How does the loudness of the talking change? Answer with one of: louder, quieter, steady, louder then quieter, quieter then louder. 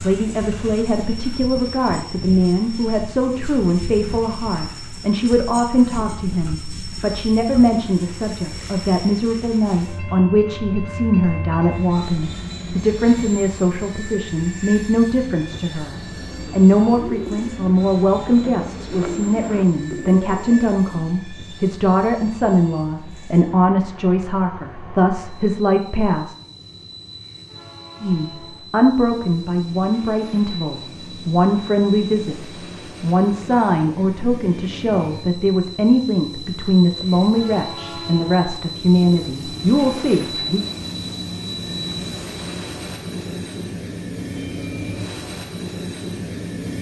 steady.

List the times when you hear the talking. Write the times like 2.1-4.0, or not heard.
0.0-26.4, 28.0-40.6.